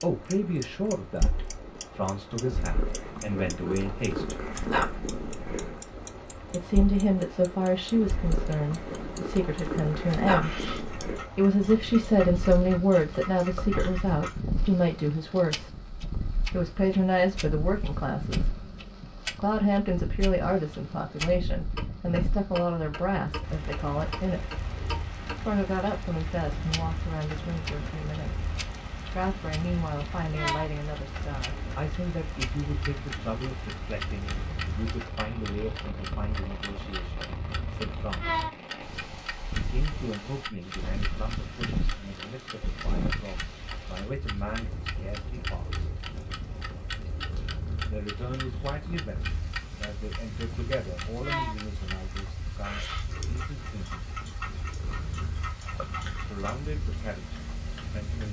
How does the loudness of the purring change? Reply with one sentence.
The volume of the purring goes down.